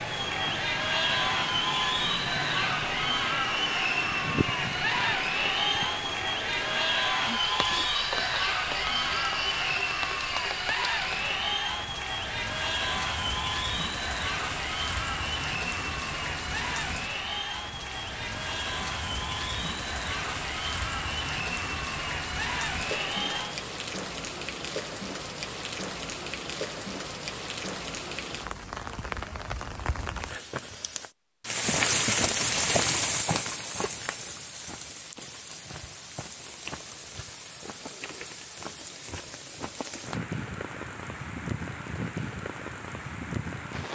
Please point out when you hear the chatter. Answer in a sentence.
You can hear the chatter from 0.0 to 23.6 s.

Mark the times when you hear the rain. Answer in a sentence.
The rain can be heard from 0.0 to 43.8 s.